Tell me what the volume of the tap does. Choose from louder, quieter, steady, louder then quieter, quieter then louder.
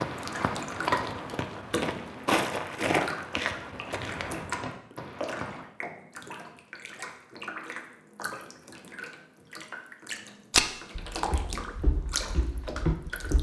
quieter then louder.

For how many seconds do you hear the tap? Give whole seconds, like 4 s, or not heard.
13 s.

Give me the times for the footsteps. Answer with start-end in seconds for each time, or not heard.
0.0-5.7, 10.5-13.3.